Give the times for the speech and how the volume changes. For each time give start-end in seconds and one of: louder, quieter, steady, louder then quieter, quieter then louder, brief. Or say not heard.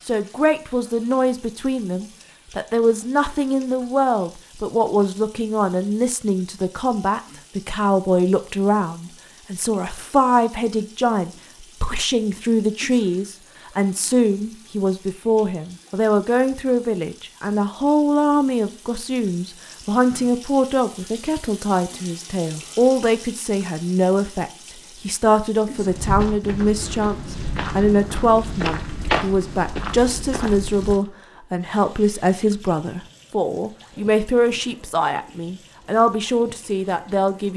0.1-37.5 steady.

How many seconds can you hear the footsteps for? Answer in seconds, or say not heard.
5 s.